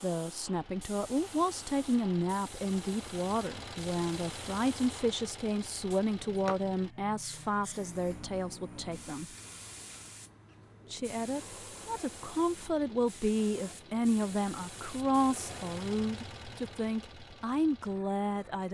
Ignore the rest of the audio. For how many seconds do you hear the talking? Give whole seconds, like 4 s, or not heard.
17 s.